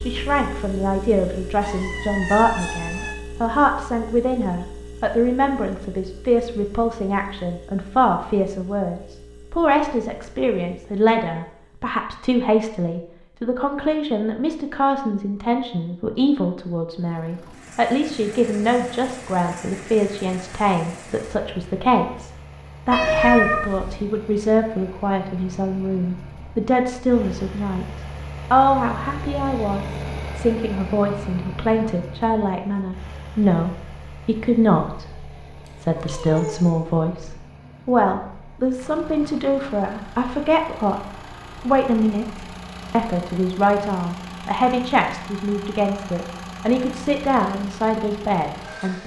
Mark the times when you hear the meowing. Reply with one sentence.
The meowing can be heard from 1.6 to 3.1 s, from 22.9 to 24.0 s and from 35.6 to 36.7 s.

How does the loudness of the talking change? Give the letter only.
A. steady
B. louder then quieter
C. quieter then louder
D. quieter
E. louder
A.